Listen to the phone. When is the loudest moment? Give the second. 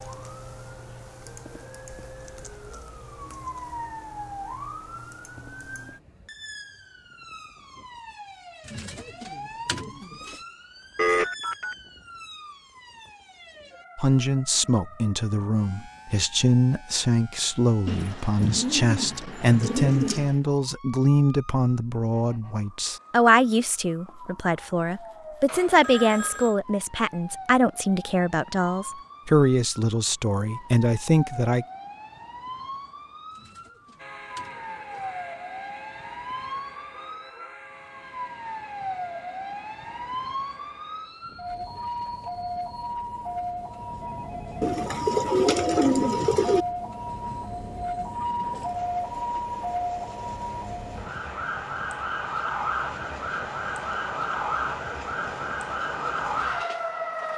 11 s.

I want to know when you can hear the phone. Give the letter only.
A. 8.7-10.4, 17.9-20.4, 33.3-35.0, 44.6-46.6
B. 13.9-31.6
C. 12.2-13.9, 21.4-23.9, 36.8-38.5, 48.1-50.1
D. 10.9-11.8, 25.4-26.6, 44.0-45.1
D.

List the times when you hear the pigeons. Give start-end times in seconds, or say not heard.
8.7-10.4, 17.9-20.4, 33.3-35.0, 44.6-46.6.